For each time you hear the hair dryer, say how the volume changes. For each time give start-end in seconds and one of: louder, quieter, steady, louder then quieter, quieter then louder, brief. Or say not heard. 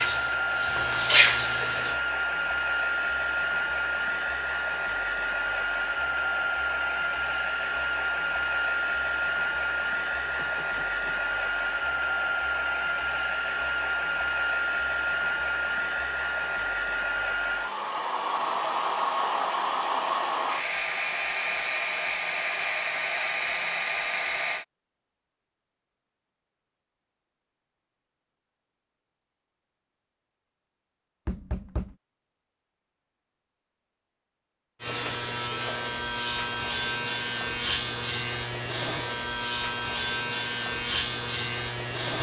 0.0-24.6 steady.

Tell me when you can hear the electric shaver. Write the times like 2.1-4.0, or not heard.
0.0-2.0, 34.8-42.1.